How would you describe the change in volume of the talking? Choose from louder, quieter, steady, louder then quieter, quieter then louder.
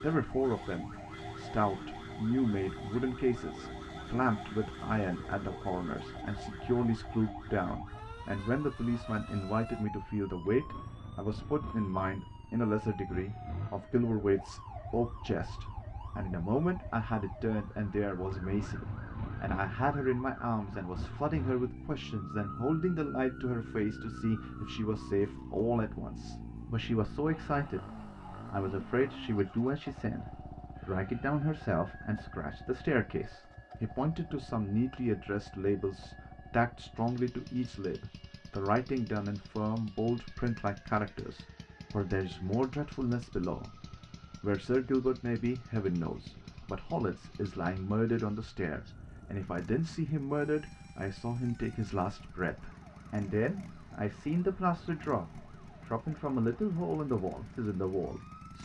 steady.